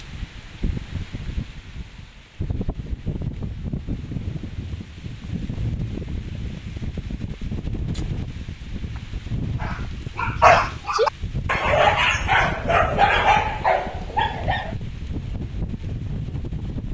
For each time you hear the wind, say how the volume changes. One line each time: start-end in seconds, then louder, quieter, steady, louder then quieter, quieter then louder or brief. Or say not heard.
0.0-16.8 steady.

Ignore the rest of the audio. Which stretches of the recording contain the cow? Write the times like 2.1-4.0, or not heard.
not heard.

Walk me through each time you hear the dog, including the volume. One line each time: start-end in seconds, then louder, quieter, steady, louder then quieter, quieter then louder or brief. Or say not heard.
9.6-14.8 quieter.